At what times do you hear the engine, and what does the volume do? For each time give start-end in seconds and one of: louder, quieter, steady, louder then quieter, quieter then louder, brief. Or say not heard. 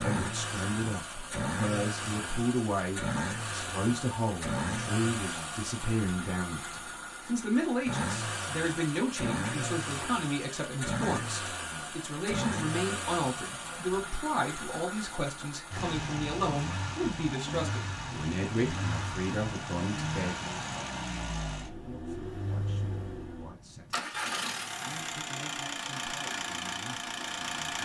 0.0-27.8 steady.